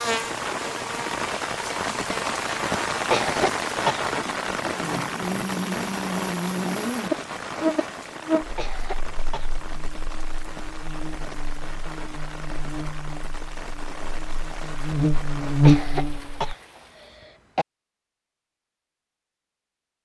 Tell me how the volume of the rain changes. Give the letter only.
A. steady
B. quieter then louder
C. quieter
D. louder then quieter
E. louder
C.